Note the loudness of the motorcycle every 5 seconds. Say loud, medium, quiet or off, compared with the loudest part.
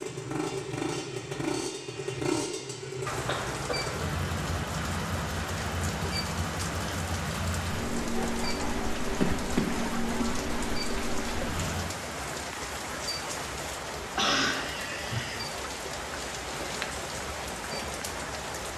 loud, loud, loud, off.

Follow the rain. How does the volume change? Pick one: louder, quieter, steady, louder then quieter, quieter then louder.
steady.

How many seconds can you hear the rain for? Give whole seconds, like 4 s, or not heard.
16 s.